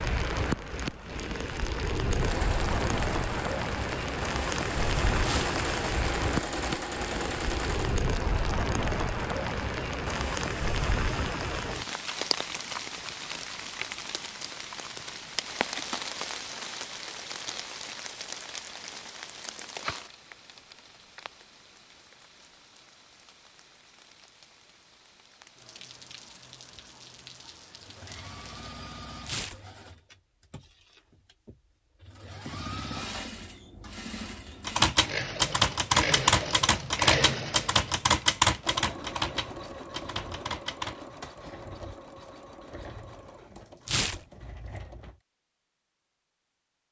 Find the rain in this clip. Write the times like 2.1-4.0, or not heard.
0.0-28.8.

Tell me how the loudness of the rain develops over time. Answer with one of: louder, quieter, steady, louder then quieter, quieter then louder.
quieter.